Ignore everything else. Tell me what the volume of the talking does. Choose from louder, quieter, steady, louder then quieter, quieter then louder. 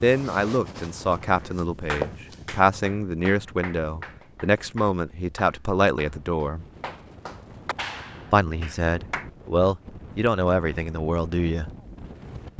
steady.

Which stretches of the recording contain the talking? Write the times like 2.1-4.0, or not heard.
0.0-6.7, 8.3-11.7.